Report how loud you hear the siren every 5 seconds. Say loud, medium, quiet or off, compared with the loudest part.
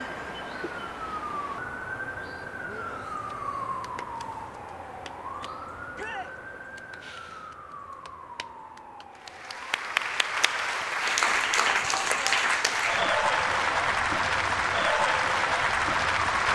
loud, medium, medium, loud.